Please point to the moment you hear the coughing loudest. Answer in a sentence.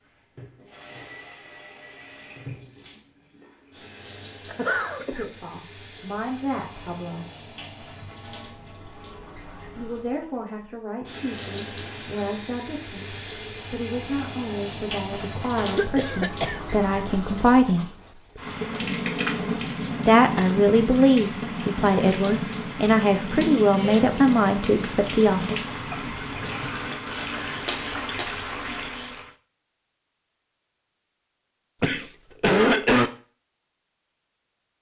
The loudest moment of the coughing is at 33 seconds.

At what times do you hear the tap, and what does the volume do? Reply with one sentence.
The tap can be heard from 0.0 to 29.3 s, getting louder.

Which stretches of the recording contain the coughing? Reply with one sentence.
The coughing can be heard from 4.5 to 5.2 s, from 15.6 to 16.6 s and from 31.8 to 33.1 s.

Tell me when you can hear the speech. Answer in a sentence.
You can hear the speech from 5.1 to 7.2 s, from 9.8 to 17.9 s and from 20.1 to 25.5 s.